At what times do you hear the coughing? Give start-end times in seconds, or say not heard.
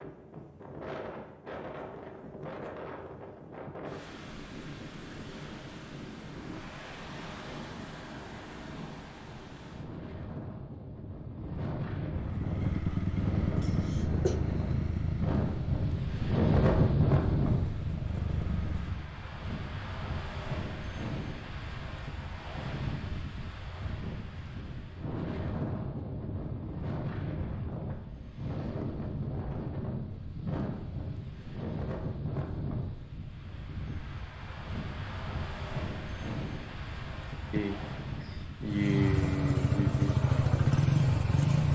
13.6-14.4, 37.5-40.1.